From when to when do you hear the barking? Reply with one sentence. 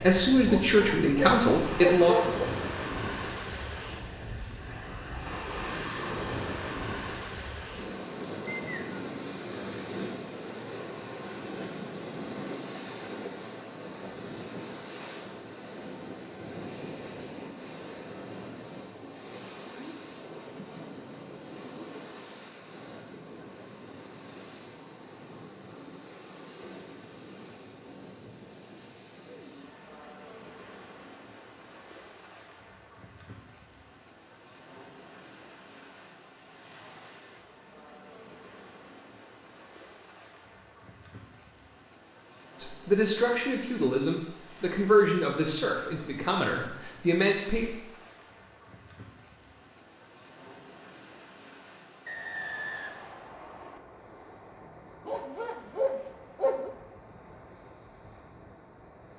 The barking can be heard from 0.5 to 2.5 s and from 55.0 to 56.7 s.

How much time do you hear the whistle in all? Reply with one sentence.
The whistle can be heard for 2 seconds in total.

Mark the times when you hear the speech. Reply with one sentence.
The speech can be heard from 0.0 to 2.1 s and from 42.5 to 47.7 s.